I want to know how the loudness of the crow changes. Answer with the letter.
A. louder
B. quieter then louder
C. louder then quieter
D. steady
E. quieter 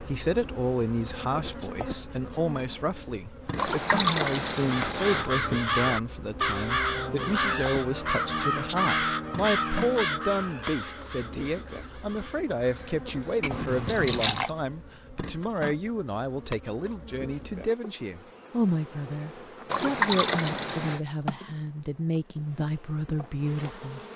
E.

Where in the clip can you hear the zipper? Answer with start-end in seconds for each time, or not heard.
not heard.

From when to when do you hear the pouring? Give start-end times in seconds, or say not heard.
3.5-5.3, 13.4-14.5, 19.7-21.0.